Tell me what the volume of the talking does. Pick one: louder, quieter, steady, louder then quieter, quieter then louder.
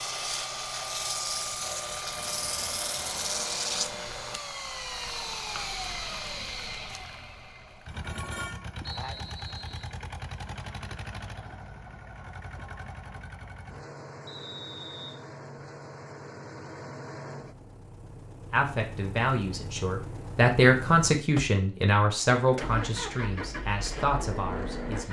louder then quieter.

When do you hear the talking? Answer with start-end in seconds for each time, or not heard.
18.5-25.0.